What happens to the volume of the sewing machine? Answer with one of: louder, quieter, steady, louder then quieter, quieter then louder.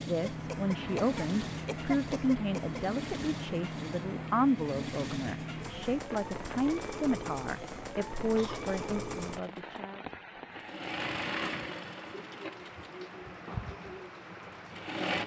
quieter.